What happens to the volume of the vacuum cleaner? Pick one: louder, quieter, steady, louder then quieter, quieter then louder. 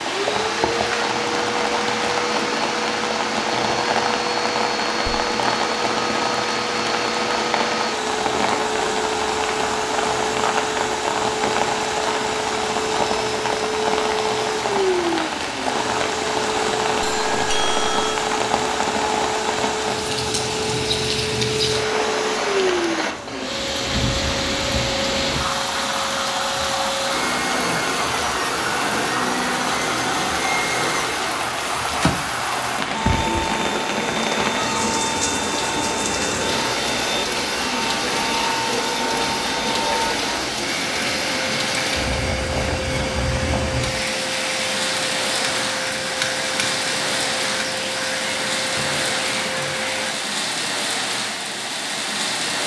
steady.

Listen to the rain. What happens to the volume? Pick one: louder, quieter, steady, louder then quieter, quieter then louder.
steady.